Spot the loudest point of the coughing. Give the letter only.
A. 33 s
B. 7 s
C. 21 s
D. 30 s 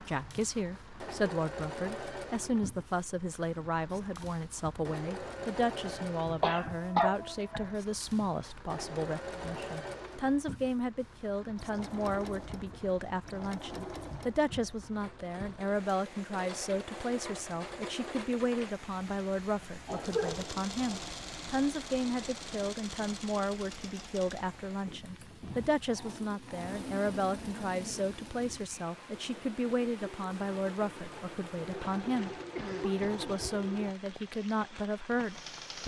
B.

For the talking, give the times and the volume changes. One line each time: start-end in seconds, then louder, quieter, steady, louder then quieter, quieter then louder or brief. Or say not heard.
0.0-35.8 steady.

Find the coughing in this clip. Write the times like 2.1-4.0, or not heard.
6.4-7.7, 19.9-21.1, 32.4-33.1.